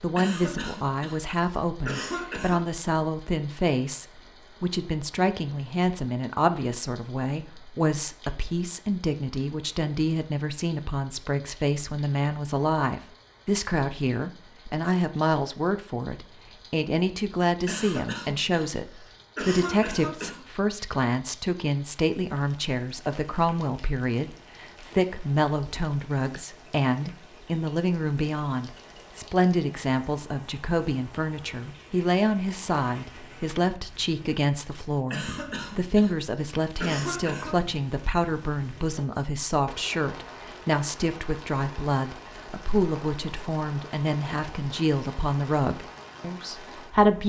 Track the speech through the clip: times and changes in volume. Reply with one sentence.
You can hear the speech from 0.0 to 47.2 s, at a steady volume.